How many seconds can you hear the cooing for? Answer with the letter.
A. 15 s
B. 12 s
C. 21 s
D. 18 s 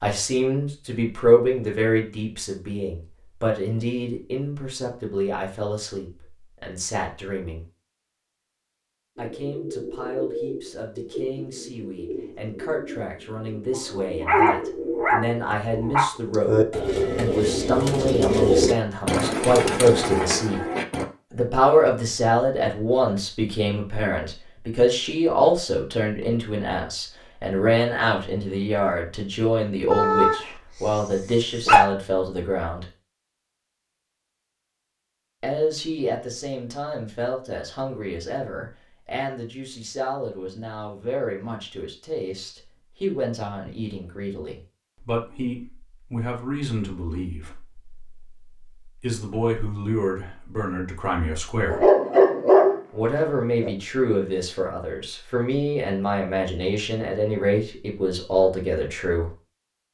B.